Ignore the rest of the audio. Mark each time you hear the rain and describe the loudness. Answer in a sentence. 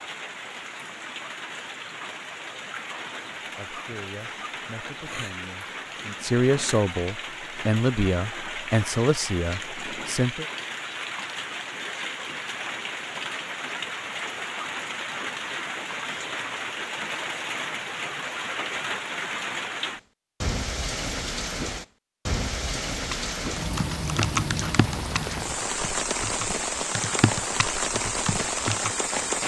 You can hear the rain from 0.0 to 29.4 s, getting louder.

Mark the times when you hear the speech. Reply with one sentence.
You can hear the speech from 3.4 to 10.4 s.